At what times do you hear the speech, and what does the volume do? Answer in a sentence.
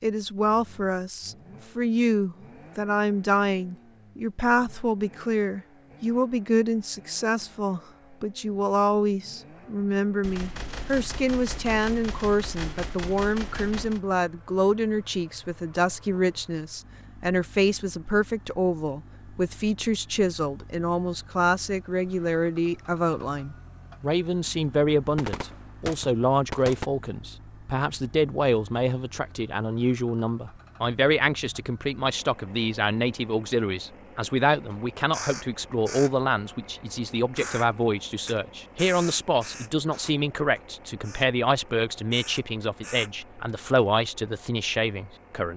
You can hear the speech from 0.0 to 45.5 s, at a steady volume.